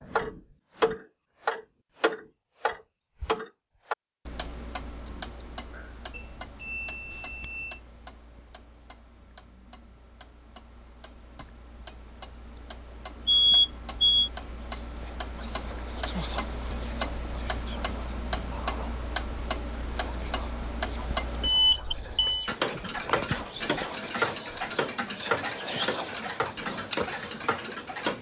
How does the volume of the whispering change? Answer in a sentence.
The loudness of the whispering goes down, then up.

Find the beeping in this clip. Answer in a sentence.
You can hear the beeping from 6.1 to 7.8 s, from 13.2 to 14.3 s and from 21.4 to 22.5 s.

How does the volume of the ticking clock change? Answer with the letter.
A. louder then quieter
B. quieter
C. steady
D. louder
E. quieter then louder
E.